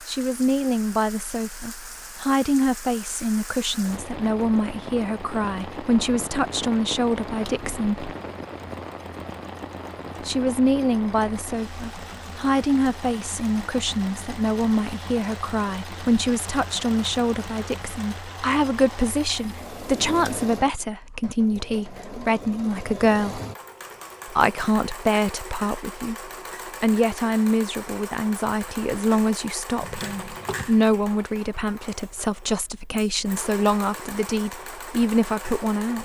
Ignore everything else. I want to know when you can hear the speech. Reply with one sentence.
The speech can be heard from 0.1 to 8.2 s, from 10.2 to 23.4 s, from 24.3 to 26.1 s and from 26.8 to 36.0 s.